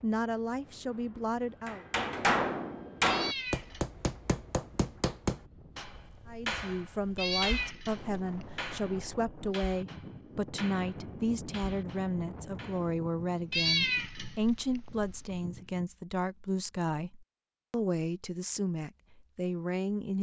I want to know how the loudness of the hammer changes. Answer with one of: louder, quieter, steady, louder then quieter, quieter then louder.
quieter.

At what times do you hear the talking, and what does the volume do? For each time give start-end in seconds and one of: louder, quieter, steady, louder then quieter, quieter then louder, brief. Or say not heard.
0.0-1.9 brief
6.2-20.1 steady.